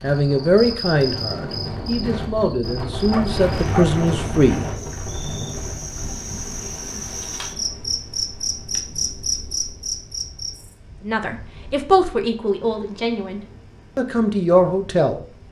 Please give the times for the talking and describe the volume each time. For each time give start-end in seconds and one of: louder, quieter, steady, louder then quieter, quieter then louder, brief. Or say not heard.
0.0-4.7 quieter then louder
11.0-15.2 quieter then louder.